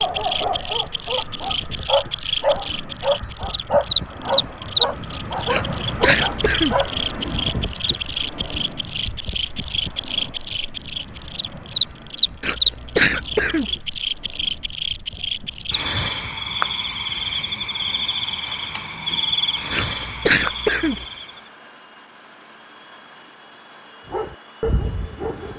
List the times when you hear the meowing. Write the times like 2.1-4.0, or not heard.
not heard.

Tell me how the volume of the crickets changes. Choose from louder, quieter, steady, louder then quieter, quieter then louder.
steady.